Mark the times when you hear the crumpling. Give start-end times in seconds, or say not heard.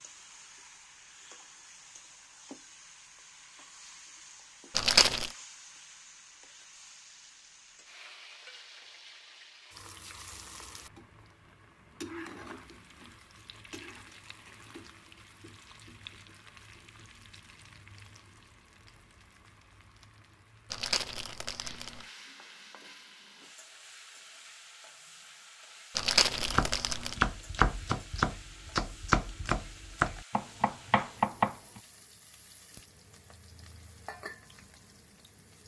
4.8-5.3, 20.7-22.1, 25.9-27.1.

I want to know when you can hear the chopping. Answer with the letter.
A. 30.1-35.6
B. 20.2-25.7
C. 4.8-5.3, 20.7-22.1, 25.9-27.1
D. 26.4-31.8
D.